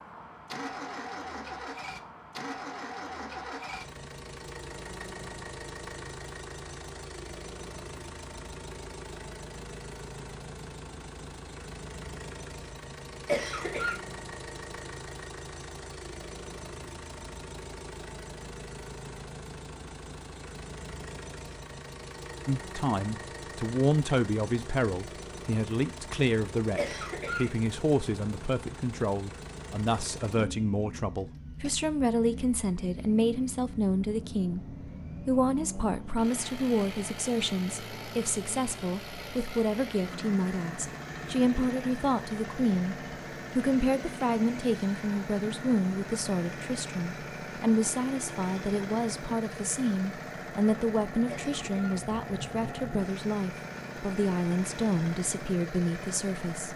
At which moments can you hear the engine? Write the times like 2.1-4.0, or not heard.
0.0-56.7.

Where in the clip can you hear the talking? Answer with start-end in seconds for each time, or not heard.
22.4-43.0, 43.5-56.7.